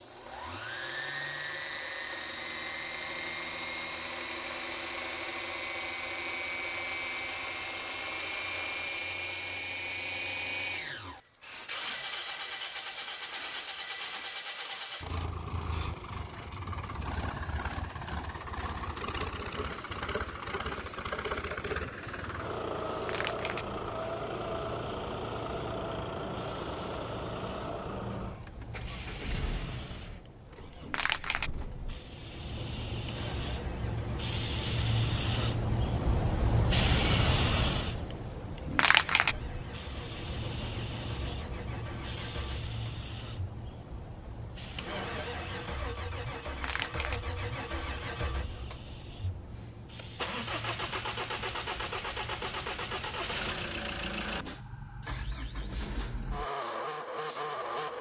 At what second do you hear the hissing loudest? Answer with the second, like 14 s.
37 s.